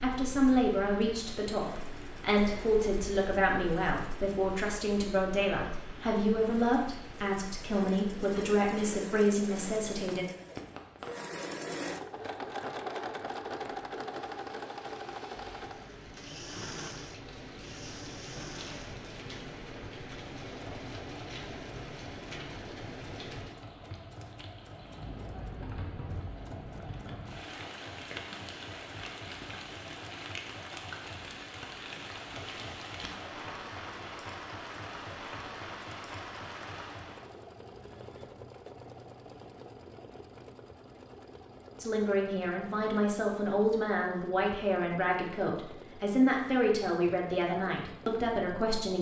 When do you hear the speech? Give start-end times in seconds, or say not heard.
0.0-10.2, 41.8-48.9.